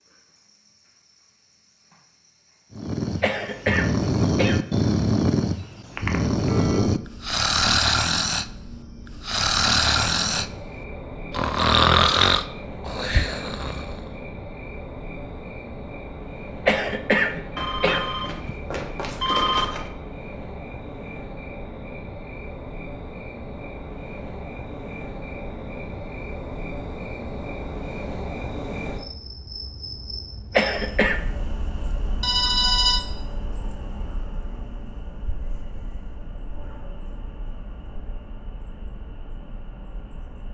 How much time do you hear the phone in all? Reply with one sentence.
You can hear the phone for 4 seconds altogether.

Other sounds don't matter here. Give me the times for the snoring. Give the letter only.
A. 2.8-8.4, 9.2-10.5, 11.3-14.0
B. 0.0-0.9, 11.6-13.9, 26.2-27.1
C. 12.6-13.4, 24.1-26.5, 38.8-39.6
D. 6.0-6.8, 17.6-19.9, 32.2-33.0
A.